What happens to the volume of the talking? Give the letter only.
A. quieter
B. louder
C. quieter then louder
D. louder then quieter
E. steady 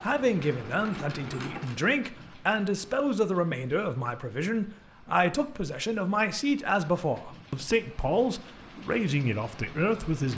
E.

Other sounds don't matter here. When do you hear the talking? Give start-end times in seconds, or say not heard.
0.0-10.3.